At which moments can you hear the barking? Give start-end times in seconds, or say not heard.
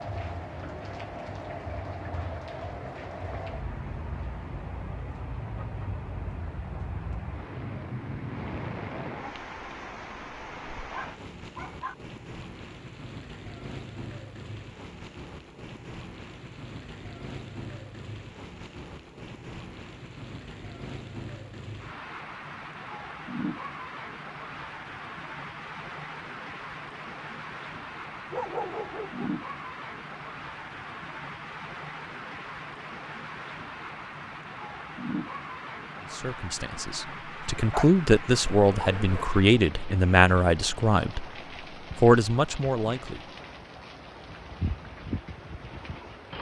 10.9-11.9, 28.3-29.4, 37.7-39.2.